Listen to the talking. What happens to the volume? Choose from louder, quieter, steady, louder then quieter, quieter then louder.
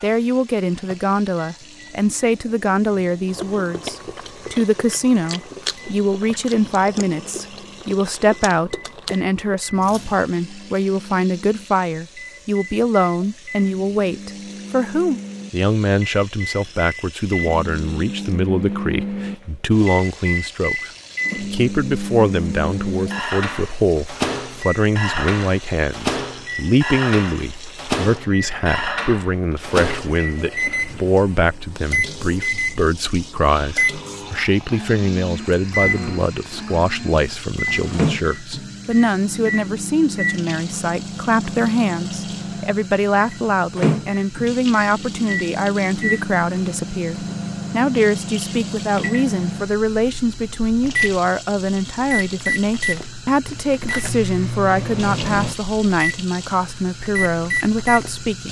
steady.